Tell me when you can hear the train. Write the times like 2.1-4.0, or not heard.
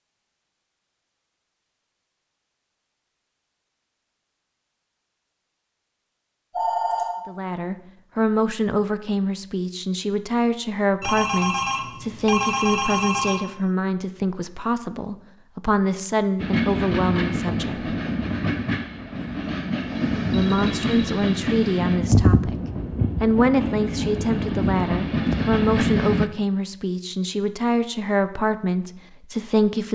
16.4-26.3.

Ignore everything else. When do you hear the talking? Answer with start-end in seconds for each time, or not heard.
7.2-17.9, 20.3-22.6, 23.2-29.8.